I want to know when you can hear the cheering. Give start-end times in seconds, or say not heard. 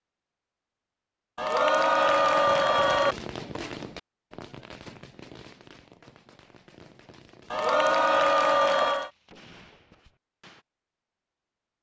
1.4-3.1, 7.5-9.1.